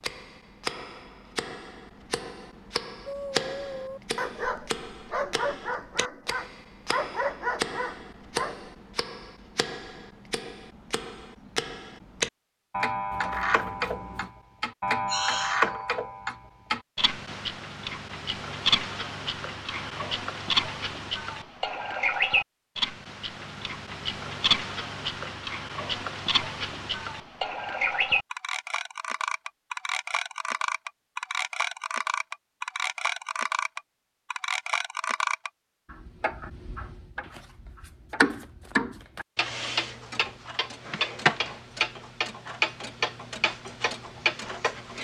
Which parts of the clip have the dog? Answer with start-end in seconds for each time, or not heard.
3.0-8.7.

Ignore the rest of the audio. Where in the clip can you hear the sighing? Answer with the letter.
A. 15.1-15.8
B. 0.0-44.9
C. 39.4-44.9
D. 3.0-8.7
A.